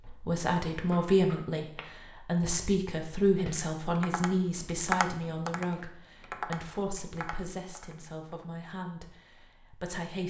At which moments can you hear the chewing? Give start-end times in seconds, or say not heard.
not heard.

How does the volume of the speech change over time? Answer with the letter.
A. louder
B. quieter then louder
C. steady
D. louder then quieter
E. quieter
E.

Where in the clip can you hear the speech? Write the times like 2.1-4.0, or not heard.
0.1-10.2.